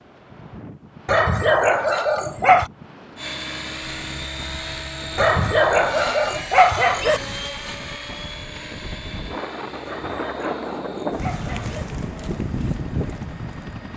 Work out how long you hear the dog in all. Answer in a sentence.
You can hear the dog for 6 seconds altogether.